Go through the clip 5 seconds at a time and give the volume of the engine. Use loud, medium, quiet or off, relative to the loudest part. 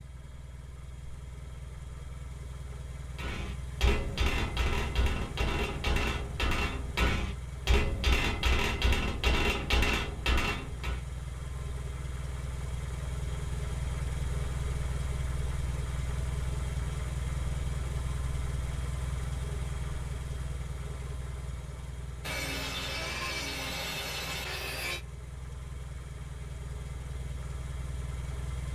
medium, medium, loud, loud, medium, medium.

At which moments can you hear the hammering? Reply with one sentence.
The hammering can be heard from 3.1 to 11.0 s.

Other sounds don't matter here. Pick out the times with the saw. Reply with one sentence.
The saw can be heard from 22.2 to 25.1 s.